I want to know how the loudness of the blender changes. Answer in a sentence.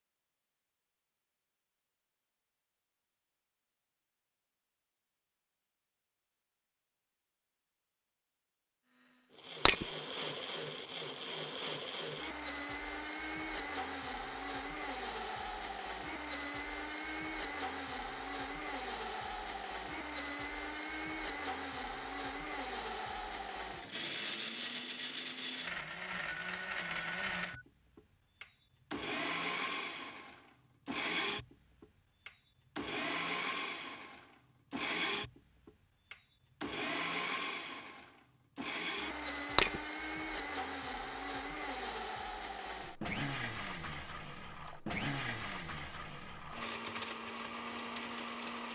The volume of the blender stays about the same.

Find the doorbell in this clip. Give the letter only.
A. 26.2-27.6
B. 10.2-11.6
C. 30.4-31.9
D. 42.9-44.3
A.